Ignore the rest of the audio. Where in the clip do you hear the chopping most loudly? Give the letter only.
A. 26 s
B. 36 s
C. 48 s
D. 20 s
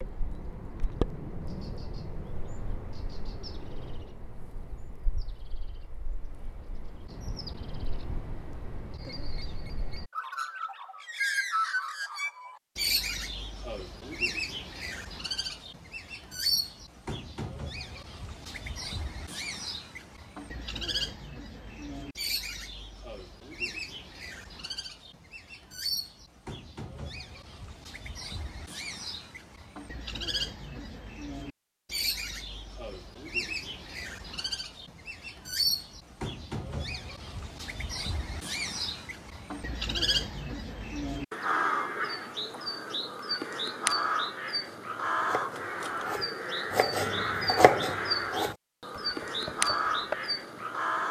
C.